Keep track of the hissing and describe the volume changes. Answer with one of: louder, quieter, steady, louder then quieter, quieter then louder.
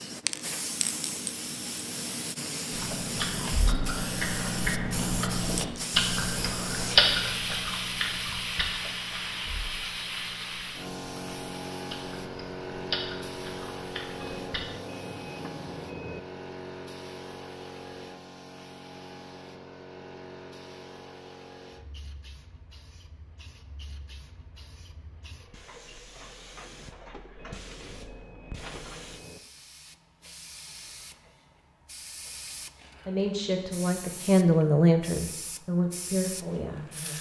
quieter.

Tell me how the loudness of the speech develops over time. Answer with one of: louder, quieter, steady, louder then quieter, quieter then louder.
louder then quieter.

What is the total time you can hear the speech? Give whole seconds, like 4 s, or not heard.
4 s.